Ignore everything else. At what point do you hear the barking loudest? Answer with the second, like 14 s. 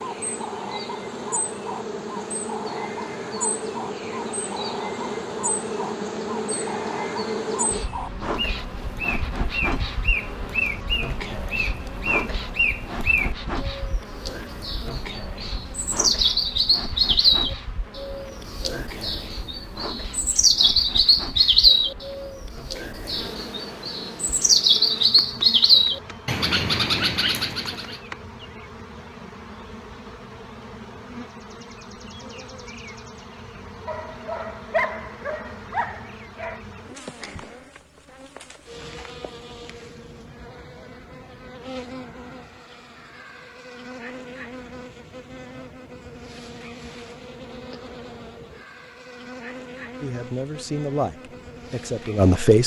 35 s.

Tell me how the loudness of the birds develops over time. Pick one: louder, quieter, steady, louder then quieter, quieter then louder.
louder.